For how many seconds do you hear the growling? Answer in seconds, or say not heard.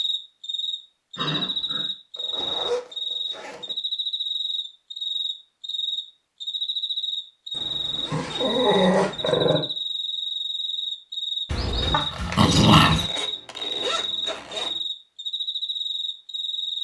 4 s.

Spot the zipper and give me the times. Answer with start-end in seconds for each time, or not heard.
2.1-3.8, 7.5-9.6, 12.8-14.8.